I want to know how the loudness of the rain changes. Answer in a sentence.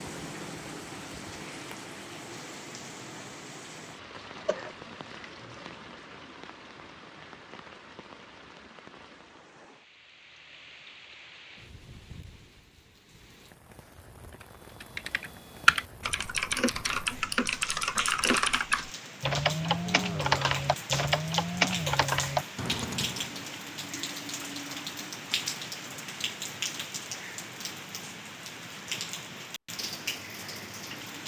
The loudness of the rain goes down, then up.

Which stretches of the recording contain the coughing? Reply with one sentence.
The coughing can be heard from 4.3 to 5.7 s.